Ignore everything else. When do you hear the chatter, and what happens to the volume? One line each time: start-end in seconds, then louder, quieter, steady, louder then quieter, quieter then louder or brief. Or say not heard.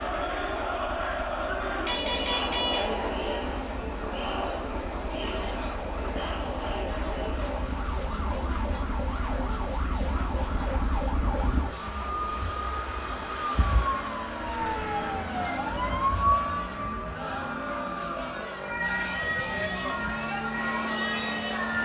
0.0-21.7 quieter then louder.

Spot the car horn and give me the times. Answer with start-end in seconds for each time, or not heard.
1.9-2.9, 14.6-15.2.